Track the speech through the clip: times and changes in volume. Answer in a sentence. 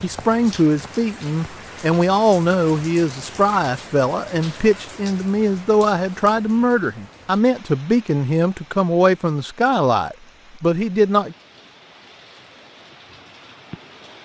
The speech can be heard from 0.0 to 11.3 s, at a steady volume.